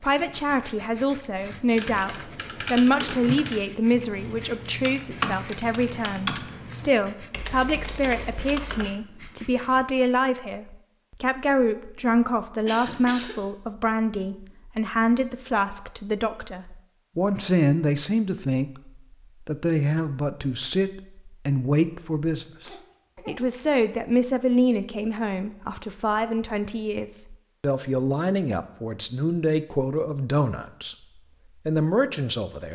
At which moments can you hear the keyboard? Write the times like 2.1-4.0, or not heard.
1.6-8.9.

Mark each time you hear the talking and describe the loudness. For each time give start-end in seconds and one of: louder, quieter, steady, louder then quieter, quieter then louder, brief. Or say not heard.
0.0-30.9 steady
31.6-32.6 brief.